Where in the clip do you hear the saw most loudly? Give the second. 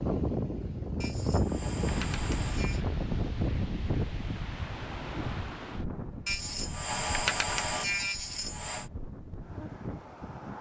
7 s.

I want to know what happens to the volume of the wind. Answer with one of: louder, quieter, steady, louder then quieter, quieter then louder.
quieter.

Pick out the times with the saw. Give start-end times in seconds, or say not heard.
1.0-2.9, 6.2-8.9.